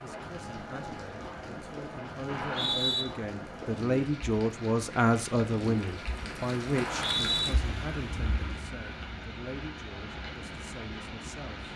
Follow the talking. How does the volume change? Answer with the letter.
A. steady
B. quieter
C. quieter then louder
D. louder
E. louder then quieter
E.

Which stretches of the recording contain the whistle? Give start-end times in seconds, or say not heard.
2.2-3.0, 6.7-7.5.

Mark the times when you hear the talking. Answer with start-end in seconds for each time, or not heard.
0.0-11.7.